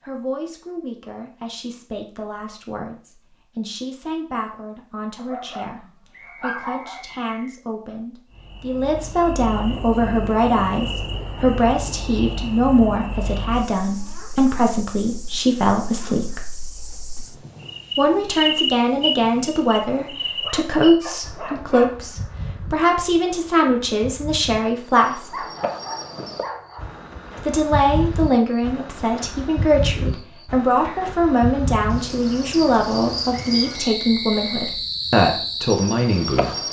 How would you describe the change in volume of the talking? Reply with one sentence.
The loudness of the talking goes up.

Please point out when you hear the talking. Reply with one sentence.
The talking can be heard from 0.0 to 16.4 s, from 17.9 to 25.4 s and from 27.4 to 36.6 s.